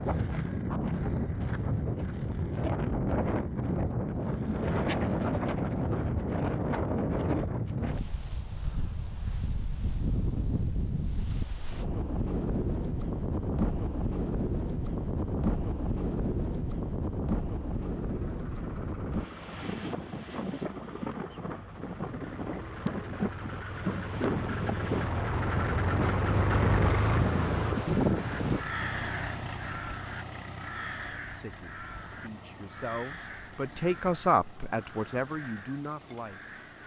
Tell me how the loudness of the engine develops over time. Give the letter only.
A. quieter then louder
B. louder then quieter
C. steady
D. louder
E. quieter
B.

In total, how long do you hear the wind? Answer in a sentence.
The wind can be heard for 29 seconds in total.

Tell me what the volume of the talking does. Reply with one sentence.
The volume of the talking goes up, then down.